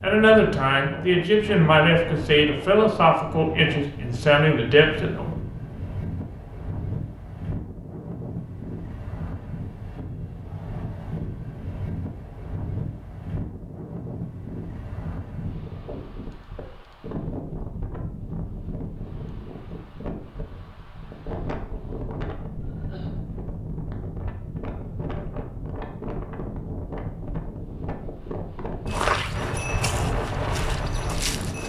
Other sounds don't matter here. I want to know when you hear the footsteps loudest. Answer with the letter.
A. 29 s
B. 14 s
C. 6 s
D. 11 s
A.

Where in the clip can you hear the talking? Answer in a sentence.
You can hear the talking from 0.0 to 5.2 s.